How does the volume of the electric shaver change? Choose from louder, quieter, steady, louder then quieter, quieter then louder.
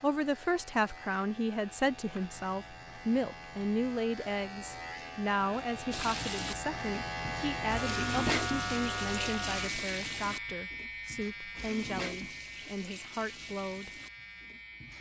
louder then quieter.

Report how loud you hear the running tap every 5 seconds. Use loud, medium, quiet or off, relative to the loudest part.
off, loud, medium.